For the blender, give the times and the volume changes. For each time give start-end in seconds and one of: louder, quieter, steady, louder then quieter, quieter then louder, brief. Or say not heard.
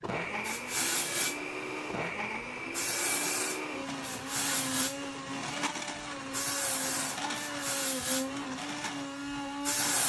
0.0-10.0 steady.